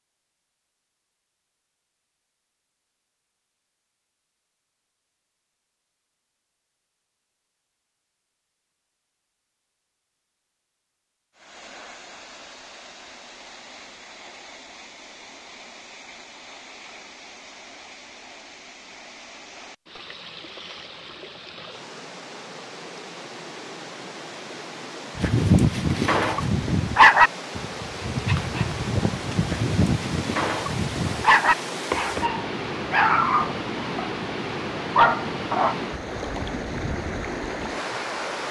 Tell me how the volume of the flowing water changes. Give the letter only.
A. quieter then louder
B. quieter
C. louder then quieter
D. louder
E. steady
D.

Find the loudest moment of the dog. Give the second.
27 s.